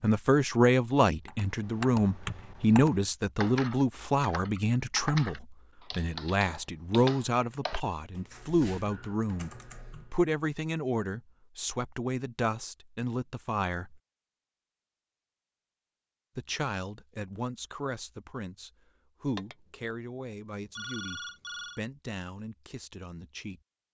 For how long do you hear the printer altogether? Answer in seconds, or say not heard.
not heard.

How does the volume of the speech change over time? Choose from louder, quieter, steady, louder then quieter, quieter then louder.
quieter.